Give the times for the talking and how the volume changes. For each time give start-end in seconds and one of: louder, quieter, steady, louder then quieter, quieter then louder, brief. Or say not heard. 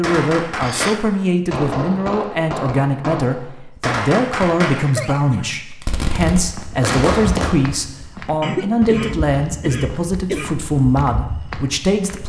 0.0-12.2 steady.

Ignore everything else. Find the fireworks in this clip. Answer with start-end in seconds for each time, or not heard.
0.0-7.5.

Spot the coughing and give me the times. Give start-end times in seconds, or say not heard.
0.6-1.0, 4.8-5.8, 8.4-10.5.